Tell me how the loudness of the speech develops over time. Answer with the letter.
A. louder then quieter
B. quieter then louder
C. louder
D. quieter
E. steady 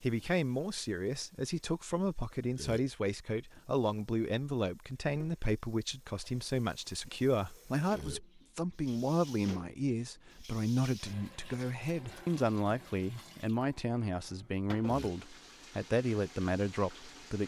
E.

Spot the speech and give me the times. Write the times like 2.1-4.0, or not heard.
0.0-17.4.